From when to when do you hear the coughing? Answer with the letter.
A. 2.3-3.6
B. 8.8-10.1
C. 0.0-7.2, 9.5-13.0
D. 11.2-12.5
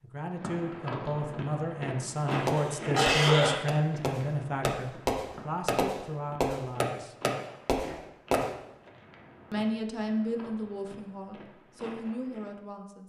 A.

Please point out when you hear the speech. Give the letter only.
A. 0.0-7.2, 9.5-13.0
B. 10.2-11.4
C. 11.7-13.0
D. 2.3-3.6
A.